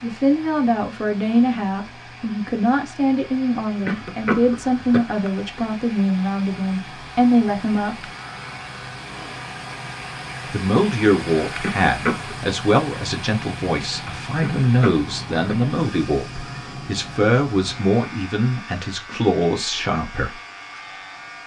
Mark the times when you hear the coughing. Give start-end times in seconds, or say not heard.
3.9-5.0, 11.6-12.4, 14.4-15.6.